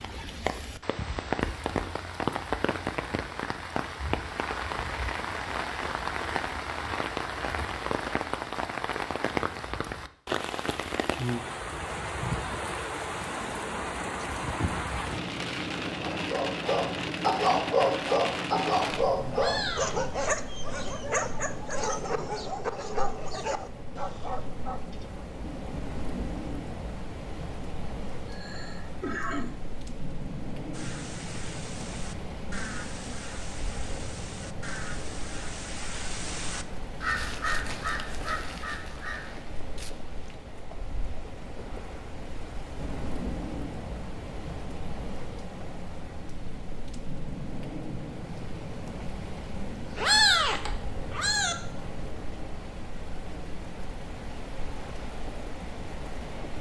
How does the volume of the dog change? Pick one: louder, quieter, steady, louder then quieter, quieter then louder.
quieter.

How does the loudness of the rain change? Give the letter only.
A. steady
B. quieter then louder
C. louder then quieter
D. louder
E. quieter
E.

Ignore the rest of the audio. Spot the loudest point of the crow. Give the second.
37 s.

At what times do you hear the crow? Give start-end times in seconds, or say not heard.
30.7-40.4.